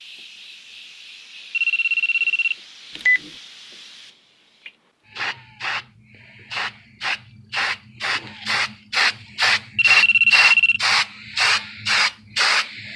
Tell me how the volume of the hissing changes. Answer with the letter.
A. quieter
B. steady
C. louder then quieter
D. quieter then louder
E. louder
E.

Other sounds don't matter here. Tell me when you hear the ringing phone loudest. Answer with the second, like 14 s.
10 s.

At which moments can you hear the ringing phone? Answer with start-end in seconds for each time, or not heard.
1.5-3.3, 9.8-10.8.